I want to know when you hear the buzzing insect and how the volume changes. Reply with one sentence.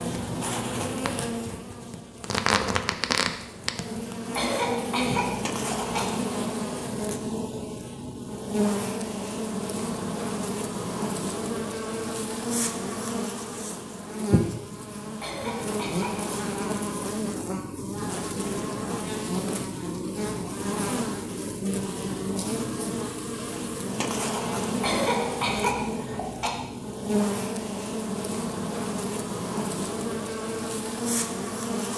The buzzing insect can be heard from 0.0 to 31.9 s, at a steady volume.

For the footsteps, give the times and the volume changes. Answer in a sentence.
You can't hear the footsteps here.